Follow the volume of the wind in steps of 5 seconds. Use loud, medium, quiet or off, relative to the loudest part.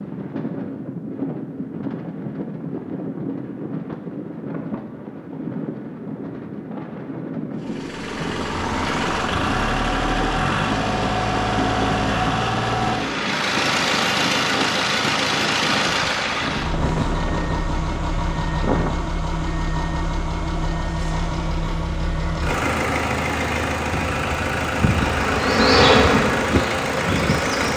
loud, loud, loud, loud, off, off.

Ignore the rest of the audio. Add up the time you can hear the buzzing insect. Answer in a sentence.
The buzzing insect can be heard for 3 seconds in total.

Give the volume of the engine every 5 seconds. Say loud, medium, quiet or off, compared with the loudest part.
off, loud, loud, loud, loud, loud.